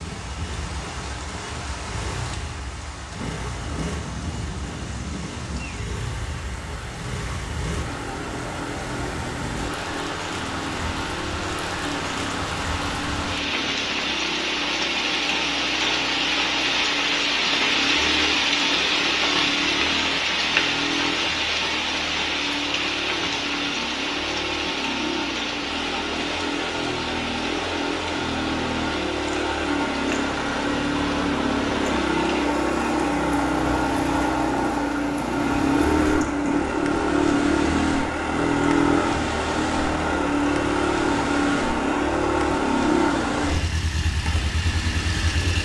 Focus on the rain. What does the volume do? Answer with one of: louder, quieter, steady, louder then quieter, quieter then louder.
louder then quieter.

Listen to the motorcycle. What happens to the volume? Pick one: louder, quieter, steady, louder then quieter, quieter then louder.
louder.